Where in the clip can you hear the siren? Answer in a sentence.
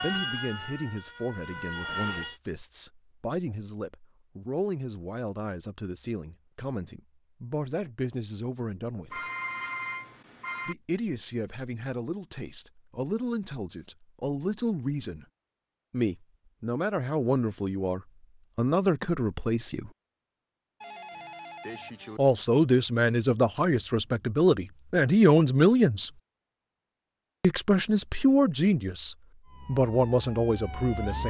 The siren can be heard from 0.0 to 2.4 s and from 29.4 to 31.2 s.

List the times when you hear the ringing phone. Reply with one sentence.
The ringing phone can be heard from 9.1 to 10.8 s and from 20.8 to 22.2 s.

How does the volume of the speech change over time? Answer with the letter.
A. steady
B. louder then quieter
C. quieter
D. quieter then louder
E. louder
E.